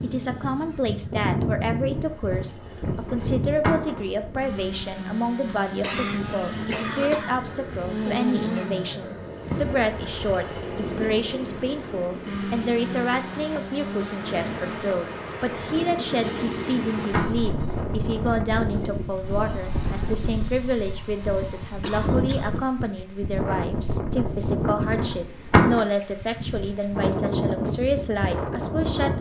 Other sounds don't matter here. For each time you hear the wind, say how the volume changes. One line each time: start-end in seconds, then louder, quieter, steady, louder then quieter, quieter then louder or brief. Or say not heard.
0.0-29.1 quieter then louder.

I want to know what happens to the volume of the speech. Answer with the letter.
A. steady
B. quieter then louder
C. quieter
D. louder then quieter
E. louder
A.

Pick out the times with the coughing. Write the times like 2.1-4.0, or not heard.
5.8-7.4, 21.8-22.6.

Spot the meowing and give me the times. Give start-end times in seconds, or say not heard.
not heard.